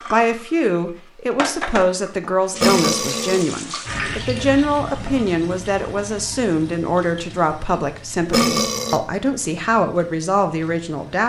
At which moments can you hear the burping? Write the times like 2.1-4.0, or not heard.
2.5-3.5, 8.2-9.0.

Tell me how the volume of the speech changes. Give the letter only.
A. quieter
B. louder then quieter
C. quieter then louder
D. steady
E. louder
D.